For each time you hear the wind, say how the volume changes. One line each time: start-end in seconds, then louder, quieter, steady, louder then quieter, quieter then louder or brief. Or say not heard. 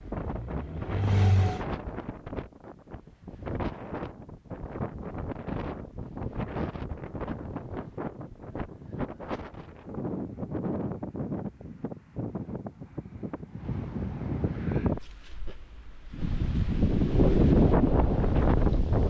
0.0-19.0 louder.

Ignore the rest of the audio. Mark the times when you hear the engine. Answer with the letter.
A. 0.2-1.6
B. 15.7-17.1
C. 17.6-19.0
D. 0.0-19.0
A.